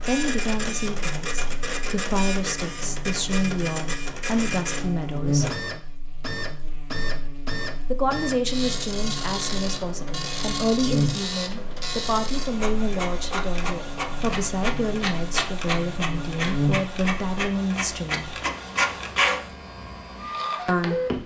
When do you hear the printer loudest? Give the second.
19 s.